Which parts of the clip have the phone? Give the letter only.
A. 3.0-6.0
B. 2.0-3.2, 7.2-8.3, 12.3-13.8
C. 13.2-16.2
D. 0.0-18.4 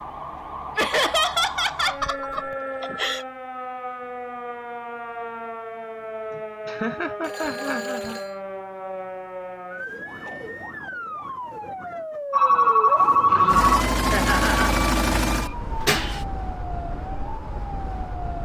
B.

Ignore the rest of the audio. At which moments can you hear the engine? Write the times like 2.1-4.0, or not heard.
13.2-16.2.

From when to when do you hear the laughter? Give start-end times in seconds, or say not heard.
0.8-3.2, 6.3-8.2, 14.1-14.8.